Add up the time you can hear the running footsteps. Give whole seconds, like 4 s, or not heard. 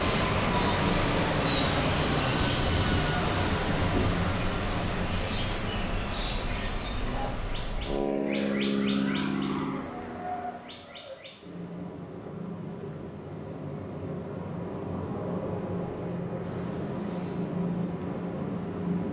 not heard.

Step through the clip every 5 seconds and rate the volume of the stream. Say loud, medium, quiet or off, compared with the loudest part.
loud, medium, quiet, quiet.